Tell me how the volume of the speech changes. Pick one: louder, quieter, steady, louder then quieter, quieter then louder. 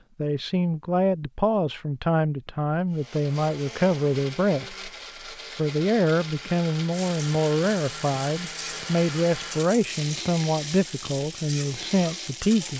steady.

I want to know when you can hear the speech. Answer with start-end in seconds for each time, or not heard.
0.1-4.9, 5.5-12.7.